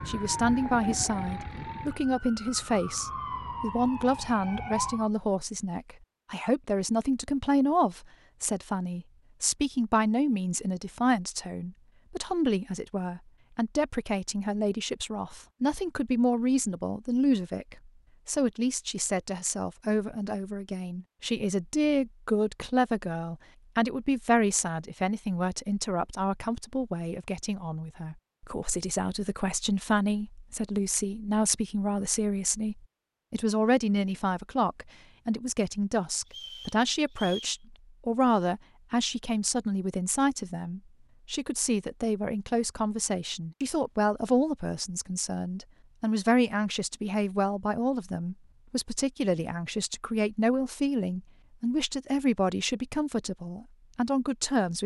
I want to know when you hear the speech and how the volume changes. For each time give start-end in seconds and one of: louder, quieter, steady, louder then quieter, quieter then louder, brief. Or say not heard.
0.1-54.8 steady.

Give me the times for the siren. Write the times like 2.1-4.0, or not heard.
0.0-5.1.